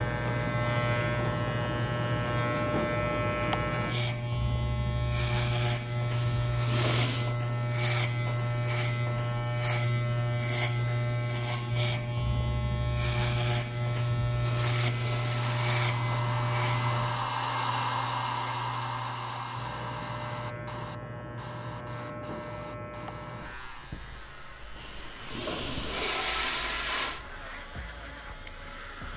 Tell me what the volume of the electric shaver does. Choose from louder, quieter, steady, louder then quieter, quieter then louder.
quieter.